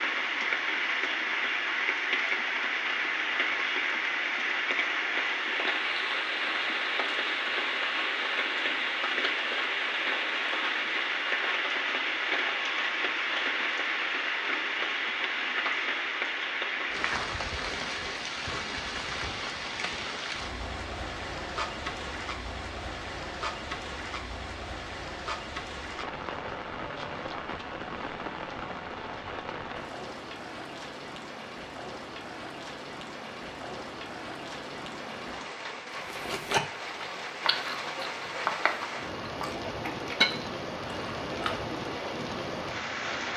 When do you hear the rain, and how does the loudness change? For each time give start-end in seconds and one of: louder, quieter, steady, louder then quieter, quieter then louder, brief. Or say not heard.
0.0-43.3 quieter.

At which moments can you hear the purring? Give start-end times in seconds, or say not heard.
not heard.